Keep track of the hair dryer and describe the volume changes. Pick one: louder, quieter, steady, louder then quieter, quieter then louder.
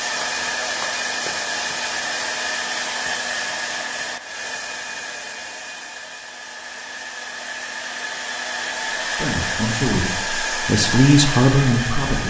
quieter then louder.